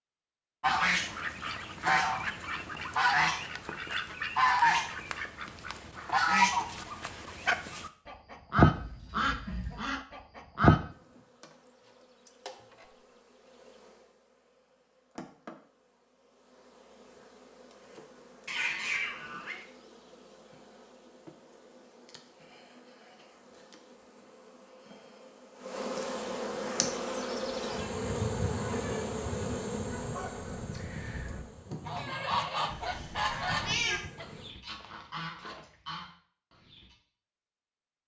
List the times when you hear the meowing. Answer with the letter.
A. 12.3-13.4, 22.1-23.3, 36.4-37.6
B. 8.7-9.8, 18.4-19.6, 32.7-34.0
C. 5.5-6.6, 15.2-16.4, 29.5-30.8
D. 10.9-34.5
B.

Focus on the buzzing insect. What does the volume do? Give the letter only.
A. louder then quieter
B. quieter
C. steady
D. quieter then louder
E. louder
A.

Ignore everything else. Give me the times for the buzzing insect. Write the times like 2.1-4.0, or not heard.
10.9-34.5.